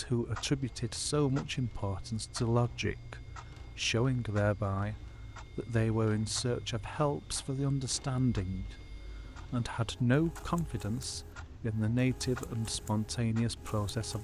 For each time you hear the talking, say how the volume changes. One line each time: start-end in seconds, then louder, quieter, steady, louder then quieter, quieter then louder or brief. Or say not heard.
0.0-14.1 steady.